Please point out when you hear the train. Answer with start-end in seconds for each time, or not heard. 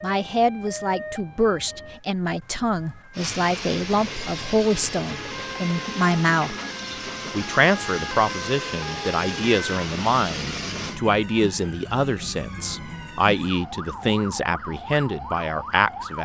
3.1-11.0.